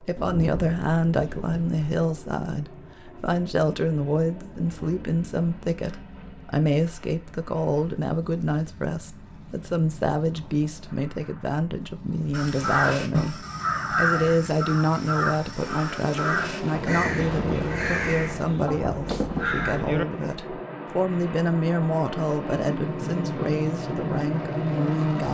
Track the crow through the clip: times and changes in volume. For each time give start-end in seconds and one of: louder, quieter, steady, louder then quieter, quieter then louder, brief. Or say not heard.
12.3-20.0 quieter.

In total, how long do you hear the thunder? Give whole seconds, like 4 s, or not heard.
5 s.